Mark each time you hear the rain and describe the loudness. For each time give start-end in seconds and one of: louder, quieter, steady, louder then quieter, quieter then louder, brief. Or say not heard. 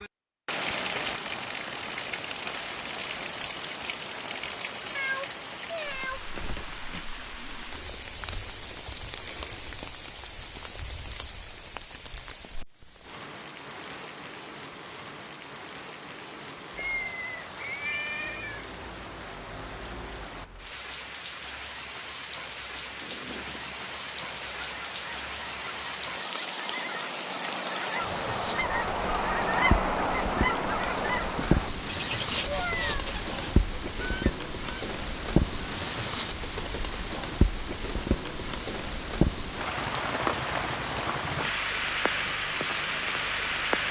0.0-43.8 quieter then louder.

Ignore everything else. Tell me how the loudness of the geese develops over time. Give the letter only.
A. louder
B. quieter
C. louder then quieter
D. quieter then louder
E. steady
C.